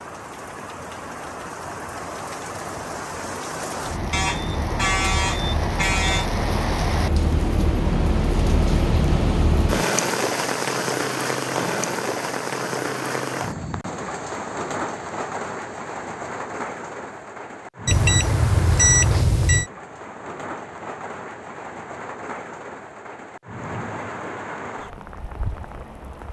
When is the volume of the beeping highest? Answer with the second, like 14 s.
19 s.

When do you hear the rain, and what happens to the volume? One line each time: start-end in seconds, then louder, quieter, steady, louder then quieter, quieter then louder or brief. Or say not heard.
0.0-26.2 louder then quieter.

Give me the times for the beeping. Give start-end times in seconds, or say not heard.
4.1-6.2, 17.9-19.7.